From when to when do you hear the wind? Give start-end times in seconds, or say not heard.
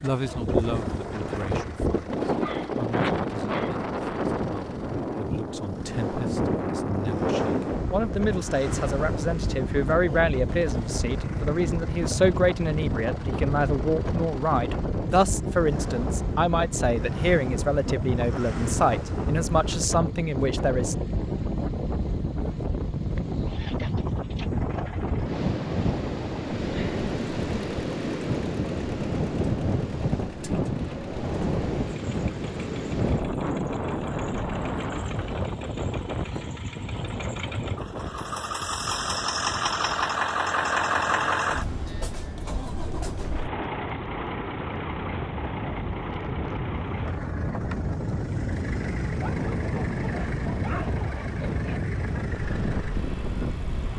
0.0-53.9.